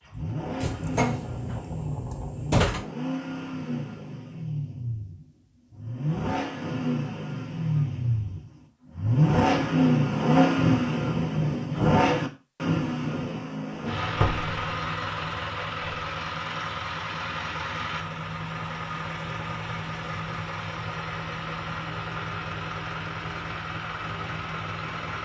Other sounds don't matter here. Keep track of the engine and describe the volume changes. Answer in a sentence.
The loudness of the engine goes up, then down.